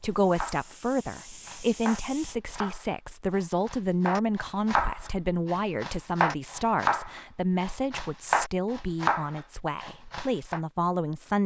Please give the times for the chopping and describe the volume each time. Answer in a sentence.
You can hear the chopping from 0.3 to 10.6 s, getting louder.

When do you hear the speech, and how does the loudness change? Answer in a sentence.
The speech can be heard from 0.0 to 11.4 s, at a steady volume.